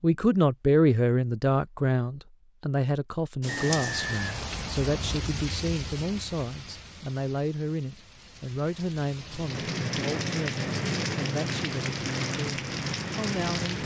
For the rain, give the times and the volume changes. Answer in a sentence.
You can hear the rain from 3.4 to 13.8 s, getting quieter then louder.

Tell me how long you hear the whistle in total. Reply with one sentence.
The whistle can be heard for 2 seconds in total.